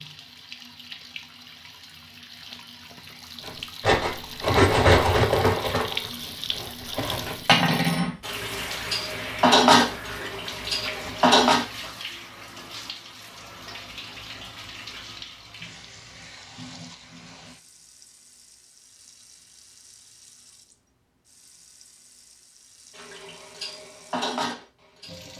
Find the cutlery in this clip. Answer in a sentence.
The cutlery can be heard from 3.5 to 11.7 s and from 22.9 to 25.3 s.